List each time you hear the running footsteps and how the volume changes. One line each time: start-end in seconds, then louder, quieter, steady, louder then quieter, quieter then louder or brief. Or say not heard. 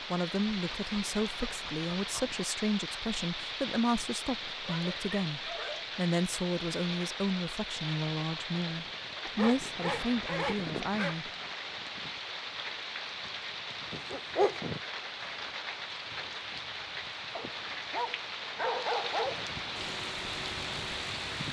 not heard.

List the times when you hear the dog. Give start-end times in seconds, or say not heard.
0.5-2.4, 4.7-5.8, 9.2-11.2, 13.9-14.6, 17.4-19.4.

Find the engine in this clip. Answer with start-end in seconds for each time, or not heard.
19.8-21.4.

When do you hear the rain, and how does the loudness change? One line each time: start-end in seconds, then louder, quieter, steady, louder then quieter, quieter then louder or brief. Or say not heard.
0.0-21.4 steady.